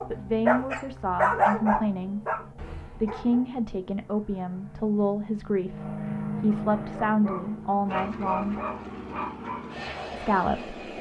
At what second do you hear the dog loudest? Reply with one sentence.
The loudest moment of the dog is at 1 second.